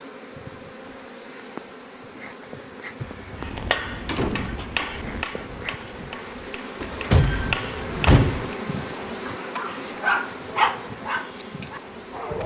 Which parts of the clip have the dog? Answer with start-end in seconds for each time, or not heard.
9.2-12.4.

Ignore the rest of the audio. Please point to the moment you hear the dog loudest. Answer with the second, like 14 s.
11 s.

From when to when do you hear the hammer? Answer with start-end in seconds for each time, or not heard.
3.4-8.6.